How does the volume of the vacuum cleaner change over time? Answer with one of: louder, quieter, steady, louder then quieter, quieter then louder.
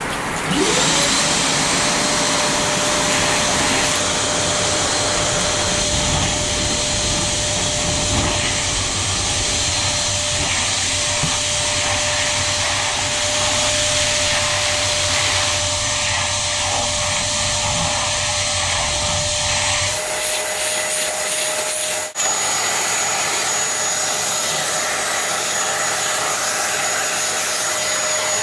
steady.